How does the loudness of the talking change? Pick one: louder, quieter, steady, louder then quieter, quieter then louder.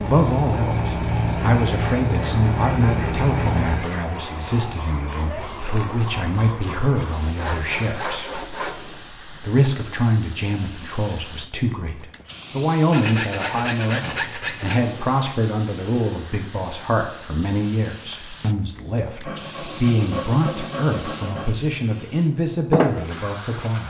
steady.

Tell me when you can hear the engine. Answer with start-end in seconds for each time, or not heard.
0.0-3.8.